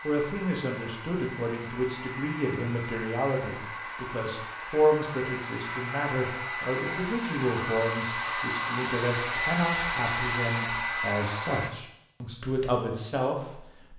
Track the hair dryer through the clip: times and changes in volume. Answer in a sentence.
You can hear the hair dryer from 0.0 to 11.7 s, getting louder.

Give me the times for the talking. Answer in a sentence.
You can hear the talking from 0.0 to 13.9 s.